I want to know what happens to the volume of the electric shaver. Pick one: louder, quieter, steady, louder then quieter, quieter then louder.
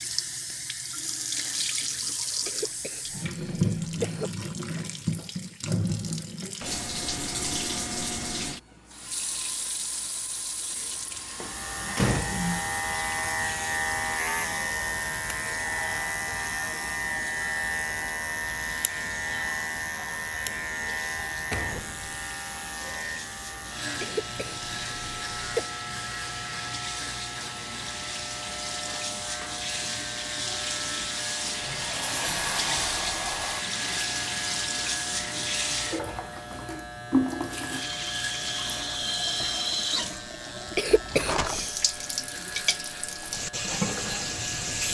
quieter.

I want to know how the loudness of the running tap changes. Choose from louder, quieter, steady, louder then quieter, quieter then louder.
quieter then louder.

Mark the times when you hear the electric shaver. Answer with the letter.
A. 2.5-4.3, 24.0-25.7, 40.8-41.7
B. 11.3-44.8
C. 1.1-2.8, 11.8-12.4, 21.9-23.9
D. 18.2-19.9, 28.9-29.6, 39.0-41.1
B.